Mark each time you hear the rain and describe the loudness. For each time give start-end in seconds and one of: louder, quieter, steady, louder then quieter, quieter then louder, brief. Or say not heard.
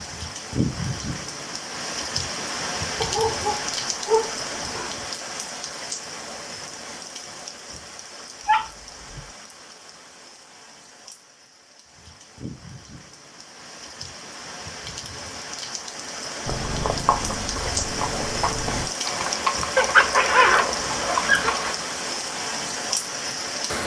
0.0-23.8 quieter then louder.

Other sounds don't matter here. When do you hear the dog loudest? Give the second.
20 s.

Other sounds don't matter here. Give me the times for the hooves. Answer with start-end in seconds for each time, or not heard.
16.4-21.8.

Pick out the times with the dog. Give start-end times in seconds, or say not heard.
3.0-4.9, 8.4-9.2, 19.8-21.6.